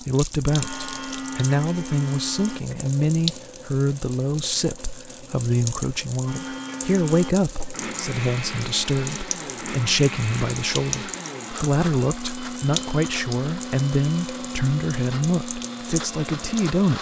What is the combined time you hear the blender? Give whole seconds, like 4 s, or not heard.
13 s.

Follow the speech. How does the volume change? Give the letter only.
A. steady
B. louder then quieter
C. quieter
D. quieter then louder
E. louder
A.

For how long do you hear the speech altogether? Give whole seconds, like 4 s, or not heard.
17 s.